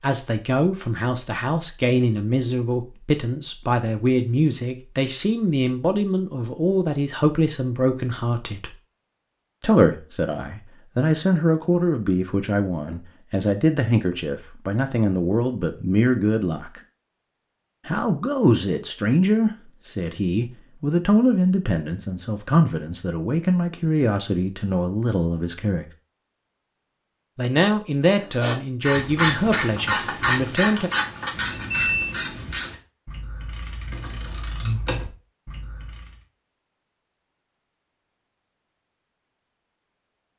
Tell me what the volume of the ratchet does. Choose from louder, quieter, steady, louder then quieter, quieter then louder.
quieter then louder.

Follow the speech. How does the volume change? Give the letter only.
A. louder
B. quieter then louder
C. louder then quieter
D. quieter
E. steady
E.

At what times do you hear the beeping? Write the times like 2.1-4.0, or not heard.
31.6-32.1.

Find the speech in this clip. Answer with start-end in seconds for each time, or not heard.
0.0-8.8, 9.6-16.8, 17.9-25.9, 27.4-30.9.